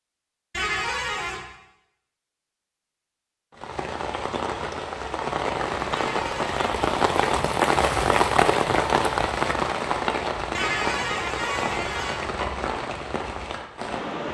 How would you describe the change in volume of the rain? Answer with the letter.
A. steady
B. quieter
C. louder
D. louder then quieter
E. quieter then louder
D.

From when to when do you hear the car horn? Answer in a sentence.
You can hear the car horn from 0.5 to 1.4 s, from 5.9 to 6.6 s and from 10.6 to 12.2 s.